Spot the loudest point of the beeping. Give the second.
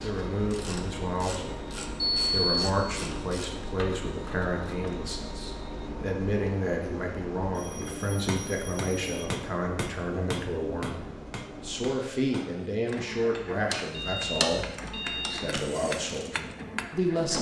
2 s.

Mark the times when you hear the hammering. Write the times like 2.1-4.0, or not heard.
8.1-17.3.